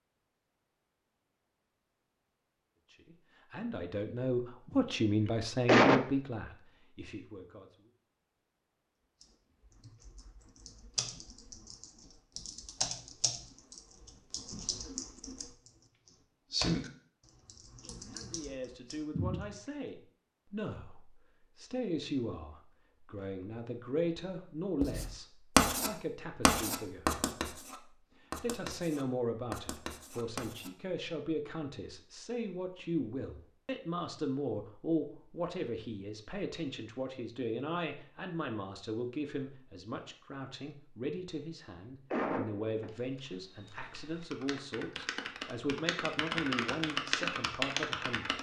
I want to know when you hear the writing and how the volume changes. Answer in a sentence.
You can hear the writing from 24.8 to 30.7 s, getting quieter.